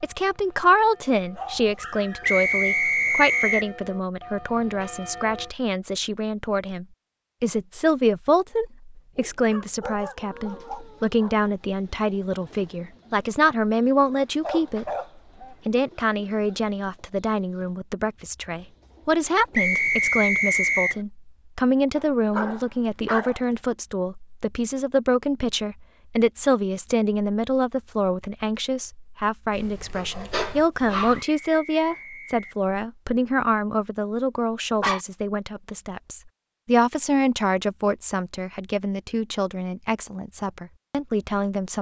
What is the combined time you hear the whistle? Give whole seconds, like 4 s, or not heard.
4 s.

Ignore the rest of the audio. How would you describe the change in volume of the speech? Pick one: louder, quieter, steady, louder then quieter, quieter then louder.
steady.